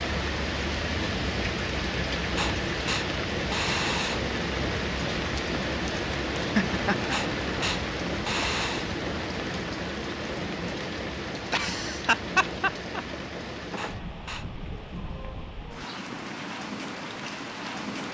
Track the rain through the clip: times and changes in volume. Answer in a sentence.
You can hear the rain from 0.0 to 18.1 s, getting quieter.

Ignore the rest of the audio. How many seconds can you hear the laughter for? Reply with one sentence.
The laughter can be heard for 2 seconds in total.